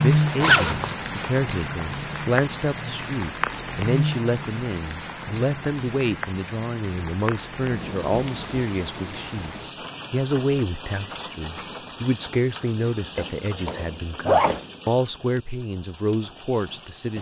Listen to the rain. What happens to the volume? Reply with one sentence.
The volume of the rain goes down.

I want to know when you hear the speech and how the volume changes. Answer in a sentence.
The speech can be heard from 0.0 to 17.1 s, at a steady volume.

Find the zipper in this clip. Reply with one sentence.
The zipper can be heard from 0.4 to 0.9 s and from 13.2 to 14.7 s.